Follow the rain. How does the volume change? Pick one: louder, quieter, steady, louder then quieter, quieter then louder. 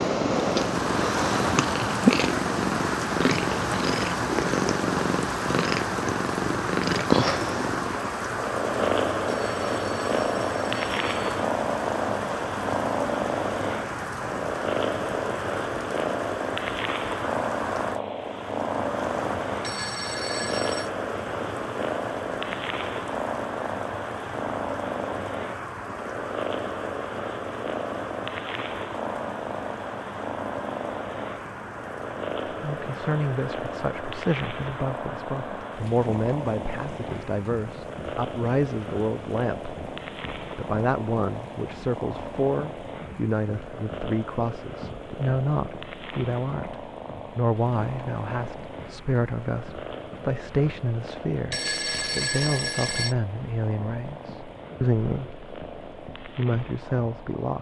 quieter.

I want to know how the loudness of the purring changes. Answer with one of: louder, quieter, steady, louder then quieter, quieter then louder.
quieter.